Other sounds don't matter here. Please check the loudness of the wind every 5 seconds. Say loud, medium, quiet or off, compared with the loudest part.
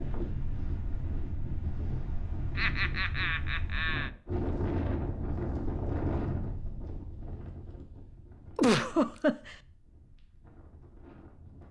loud, loud, quiet.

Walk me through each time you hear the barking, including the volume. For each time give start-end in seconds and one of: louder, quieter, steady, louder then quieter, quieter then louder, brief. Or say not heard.
not heard.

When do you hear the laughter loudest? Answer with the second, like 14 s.
9 s.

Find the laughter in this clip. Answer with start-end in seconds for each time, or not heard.
2.5-4.1, 8.6-9.6.